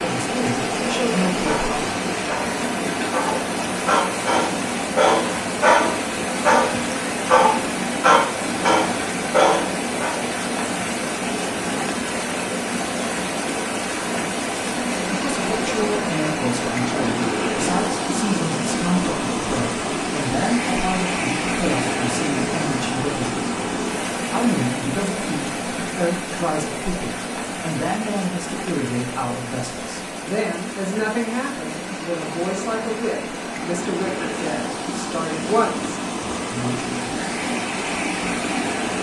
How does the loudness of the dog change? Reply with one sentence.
The volume of the dog goes up.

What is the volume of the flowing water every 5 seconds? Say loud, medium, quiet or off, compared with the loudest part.
loud, loud, loud, loud, loud, medium, medium, loud.